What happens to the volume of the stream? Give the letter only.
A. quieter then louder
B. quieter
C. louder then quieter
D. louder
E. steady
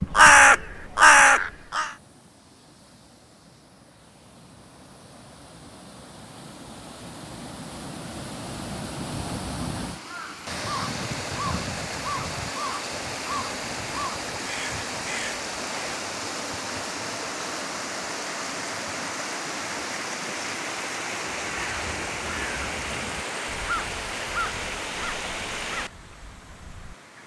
D.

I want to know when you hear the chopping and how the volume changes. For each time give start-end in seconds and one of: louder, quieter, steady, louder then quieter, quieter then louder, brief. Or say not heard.
not heard.